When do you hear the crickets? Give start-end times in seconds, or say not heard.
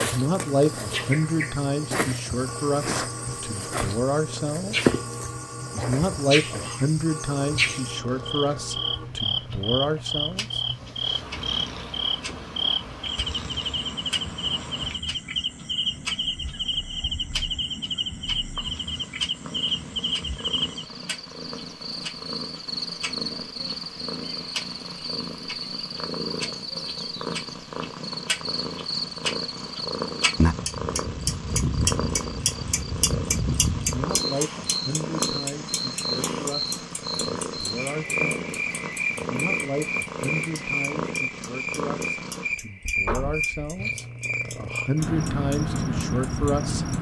0.0-46.9.